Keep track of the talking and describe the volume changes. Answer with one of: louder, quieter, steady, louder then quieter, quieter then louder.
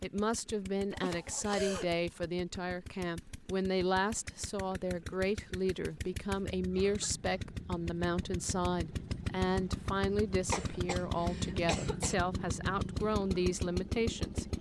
steady.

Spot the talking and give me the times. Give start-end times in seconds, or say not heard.
0.0-14.5.